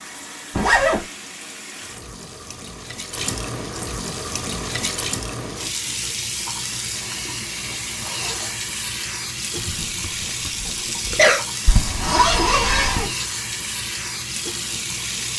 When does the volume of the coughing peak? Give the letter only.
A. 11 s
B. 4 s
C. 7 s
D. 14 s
A.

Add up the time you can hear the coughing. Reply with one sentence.
You can hear the coughing for 2 seconds altogether.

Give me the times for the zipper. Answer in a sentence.
You can hear the zipper from 0.6 to 1.1 s, from 6.9 to 8.6 s and from 11.7 to 13.1 s.